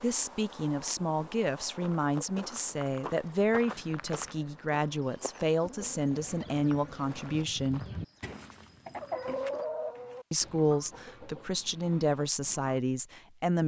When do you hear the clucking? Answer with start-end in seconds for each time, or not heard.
6.2-12.8.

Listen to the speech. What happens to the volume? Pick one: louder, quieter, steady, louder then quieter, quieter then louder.
steady.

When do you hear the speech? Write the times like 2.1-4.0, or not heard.
0.0-7.8, 10.3-13.6.